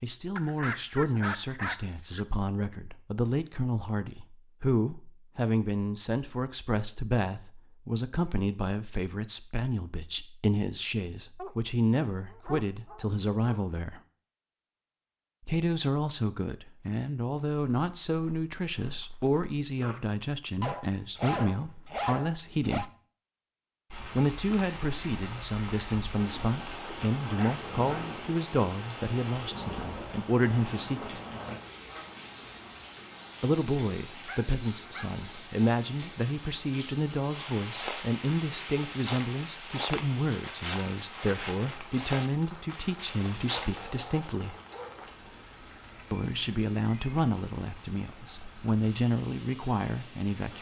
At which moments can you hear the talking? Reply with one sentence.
The talking can be heard from 0.0 to 14.0 s, from 15.4 to 22.9 s, from 24.1 to 31.2 s, from 33.4 to 44.5 s and from 46.1 to 50.5 s.